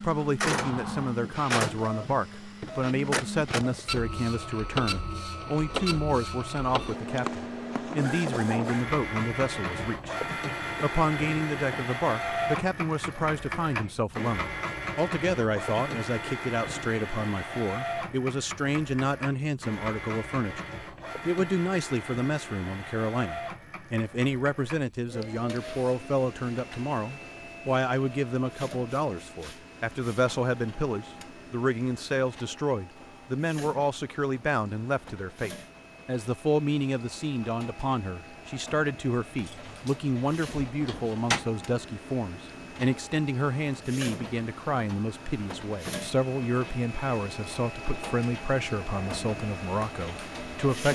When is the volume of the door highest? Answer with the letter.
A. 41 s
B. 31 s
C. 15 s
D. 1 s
A.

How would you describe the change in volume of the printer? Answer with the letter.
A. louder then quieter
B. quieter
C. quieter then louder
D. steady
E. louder
C.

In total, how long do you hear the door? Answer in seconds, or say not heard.
3 s.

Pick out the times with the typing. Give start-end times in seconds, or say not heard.
not heard.